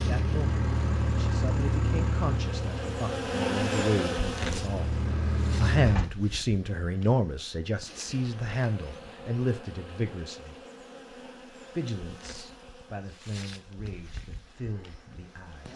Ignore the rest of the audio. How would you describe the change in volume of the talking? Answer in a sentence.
The volume of the talking goes up, then down.